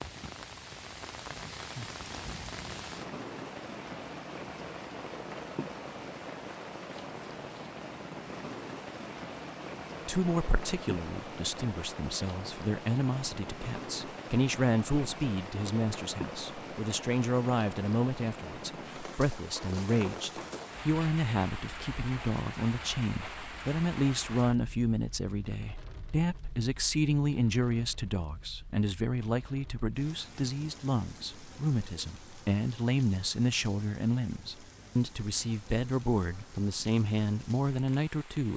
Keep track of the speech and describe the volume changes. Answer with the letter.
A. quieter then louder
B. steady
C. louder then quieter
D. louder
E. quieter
B.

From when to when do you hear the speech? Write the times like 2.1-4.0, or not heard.
10.1-38.5.